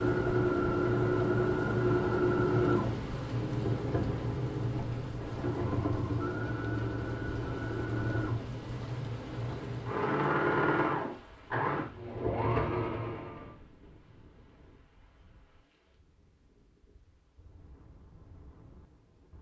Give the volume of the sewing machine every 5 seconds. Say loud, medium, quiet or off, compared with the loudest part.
loud, medium, loud, off.